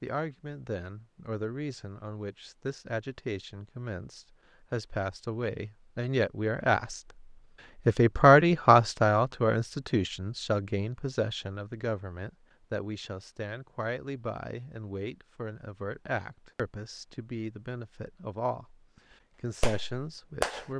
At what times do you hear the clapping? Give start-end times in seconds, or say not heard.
19.6-20.6.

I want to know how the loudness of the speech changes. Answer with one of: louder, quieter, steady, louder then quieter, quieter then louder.
louder then quieter.